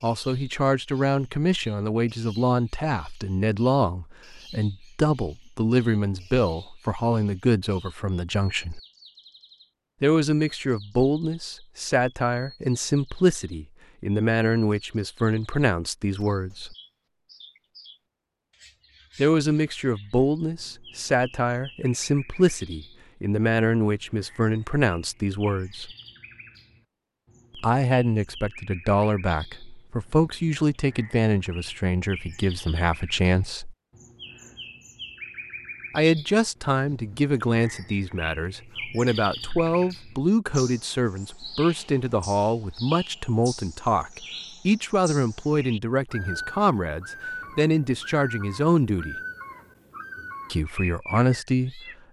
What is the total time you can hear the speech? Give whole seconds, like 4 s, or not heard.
43 s.